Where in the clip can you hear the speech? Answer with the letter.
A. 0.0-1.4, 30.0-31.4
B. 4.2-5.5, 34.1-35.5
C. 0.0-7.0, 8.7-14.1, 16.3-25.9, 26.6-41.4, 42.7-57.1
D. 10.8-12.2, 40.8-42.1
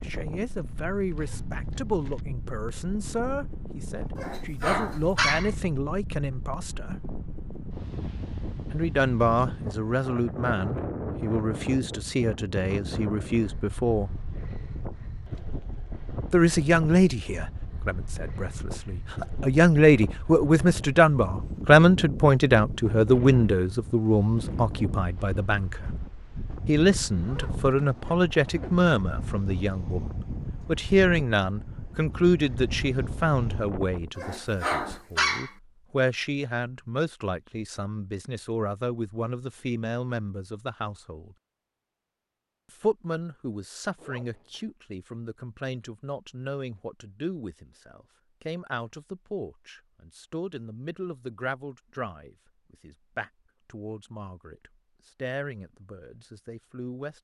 C.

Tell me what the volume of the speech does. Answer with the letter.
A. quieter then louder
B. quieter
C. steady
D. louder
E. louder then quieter
E.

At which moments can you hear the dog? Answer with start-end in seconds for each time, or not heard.
4.2-5.5, 34.1-35.5.